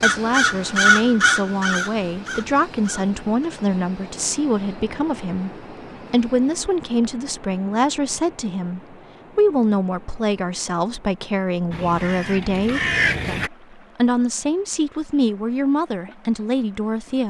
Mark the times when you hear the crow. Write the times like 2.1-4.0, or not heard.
0.0-3.5, 11.7-13.5.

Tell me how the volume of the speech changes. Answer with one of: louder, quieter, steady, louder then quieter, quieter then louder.
steady.